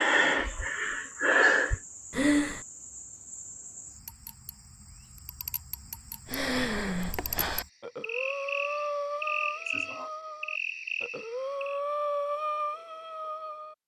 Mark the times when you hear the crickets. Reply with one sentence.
You can hear the crickets from 0.0 to 11.8 s.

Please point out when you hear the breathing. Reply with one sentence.
You can hear the breathing from 0.0 to 2.6 s and from 6.2 to 13.8 s.